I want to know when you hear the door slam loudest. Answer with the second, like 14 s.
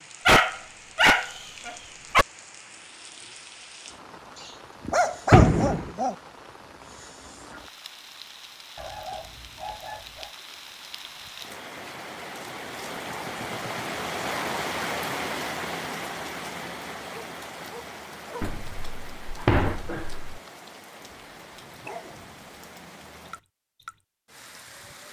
5 s.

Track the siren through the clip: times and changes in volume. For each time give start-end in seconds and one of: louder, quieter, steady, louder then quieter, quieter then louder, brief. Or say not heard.
not heard.